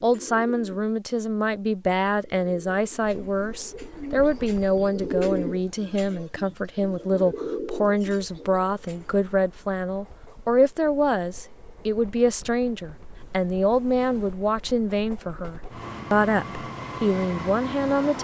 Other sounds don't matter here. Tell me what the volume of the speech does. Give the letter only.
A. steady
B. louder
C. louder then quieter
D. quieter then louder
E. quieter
A.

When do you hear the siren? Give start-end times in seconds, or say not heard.
not heard.